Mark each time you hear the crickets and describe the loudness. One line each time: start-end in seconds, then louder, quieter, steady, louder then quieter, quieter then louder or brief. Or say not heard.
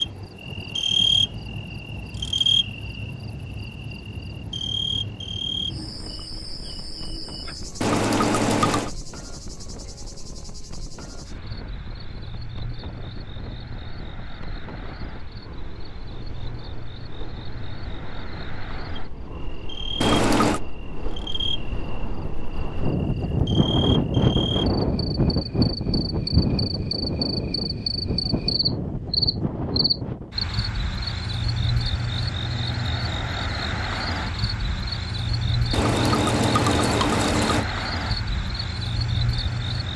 0.0-39.9 quieter then louder.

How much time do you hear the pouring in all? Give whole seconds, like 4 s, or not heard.
4 s.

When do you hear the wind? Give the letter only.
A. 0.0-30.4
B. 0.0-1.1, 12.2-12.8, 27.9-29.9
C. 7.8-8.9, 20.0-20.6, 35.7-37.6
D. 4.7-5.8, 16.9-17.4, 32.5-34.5
A.